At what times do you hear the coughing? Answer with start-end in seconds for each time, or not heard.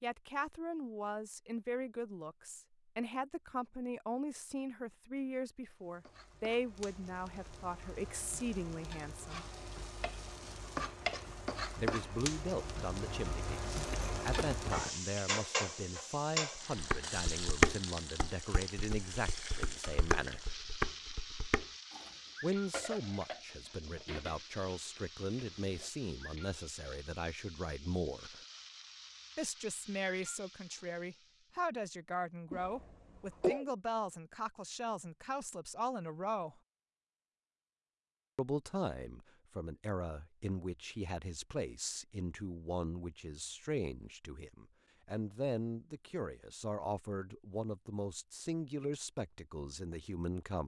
13.8-15.0, 32.5-33.7.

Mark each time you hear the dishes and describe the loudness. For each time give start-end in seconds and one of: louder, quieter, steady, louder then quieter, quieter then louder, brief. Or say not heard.
16.8-25.9 quieter.